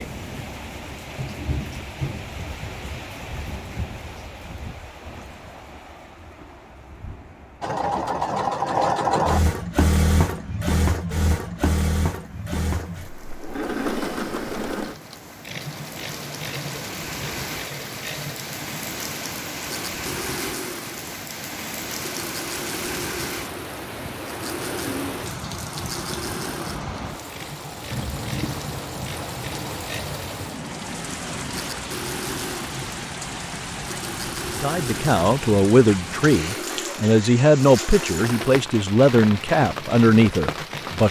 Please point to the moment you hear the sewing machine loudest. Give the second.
9 s.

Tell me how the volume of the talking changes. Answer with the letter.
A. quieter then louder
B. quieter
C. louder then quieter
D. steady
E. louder
D.